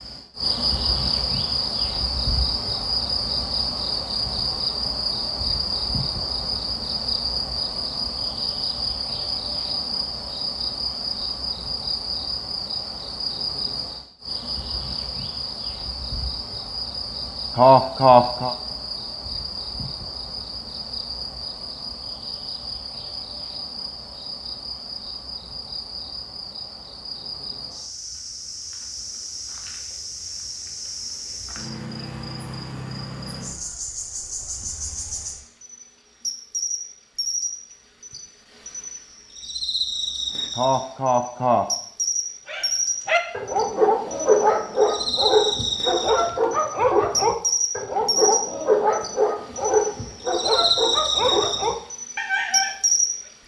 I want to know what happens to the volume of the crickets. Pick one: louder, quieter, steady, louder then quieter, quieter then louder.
quieter then louder.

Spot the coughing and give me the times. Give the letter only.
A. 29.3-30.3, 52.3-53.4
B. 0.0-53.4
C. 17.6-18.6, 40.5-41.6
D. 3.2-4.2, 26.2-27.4
C.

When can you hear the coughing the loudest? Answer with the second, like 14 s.
18 s.